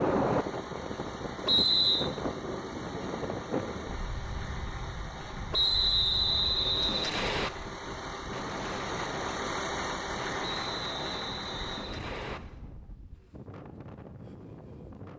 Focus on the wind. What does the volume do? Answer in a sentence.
The loudness of the wind goes down.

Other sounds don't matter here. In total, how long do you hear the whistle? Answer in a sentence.
The whistle can be heard for 5 seconds in total.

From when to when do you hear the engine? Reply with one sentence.
You can hear the engine from 0.0 to 12.6 s.